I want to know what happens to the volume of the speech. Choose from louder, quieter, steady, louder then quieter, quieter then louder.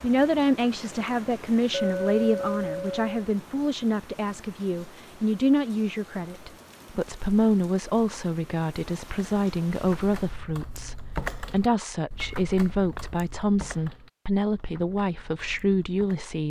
steady.